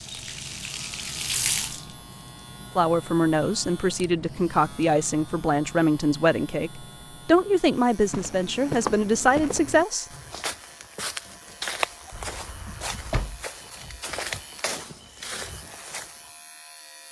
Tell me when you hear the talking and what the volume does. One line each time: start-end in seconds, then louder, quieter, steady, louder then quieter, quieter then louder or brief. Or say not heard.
2.8-10.1 steady.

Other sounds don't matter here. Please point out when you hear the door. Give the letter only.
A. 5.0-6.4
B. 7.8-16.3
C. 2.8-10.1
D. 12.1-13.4
D.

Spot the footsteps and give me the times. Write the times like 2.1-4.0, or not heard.
7.8-16.3.